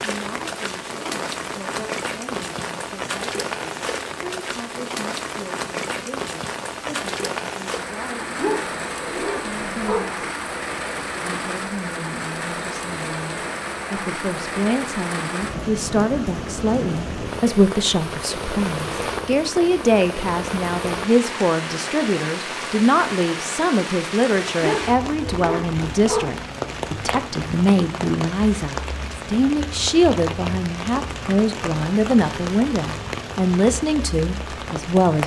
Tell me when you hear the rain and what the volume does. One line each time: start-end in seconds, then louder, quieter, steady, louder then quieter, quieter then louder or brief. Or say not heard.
0.0-35.2 steady.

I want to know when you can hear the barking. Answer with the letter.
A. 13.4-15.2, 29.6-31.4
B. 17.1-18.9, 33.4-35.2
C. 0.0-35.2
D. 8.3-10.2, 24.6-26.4
D.